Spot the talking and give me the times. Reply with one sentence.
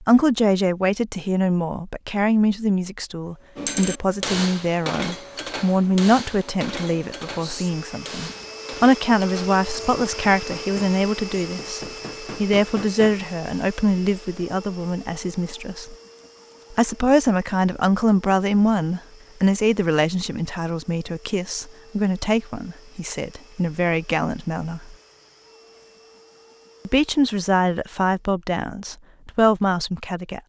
The talking can be heard from 0.0 to 15.9 s, from 16.7 to 24.9 s and from 26.9 to 30.4 s.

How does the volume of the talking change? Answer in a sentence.
The volume of the talking stays about the same.